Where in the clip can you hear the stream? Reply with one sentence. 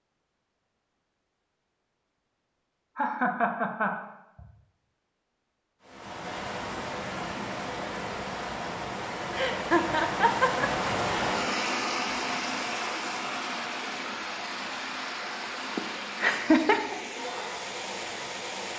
The stream can be heard from 5.8 to 18.7 s.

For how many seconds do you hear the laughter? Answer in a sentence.
You can hear the laughter for 4 seconds altogether.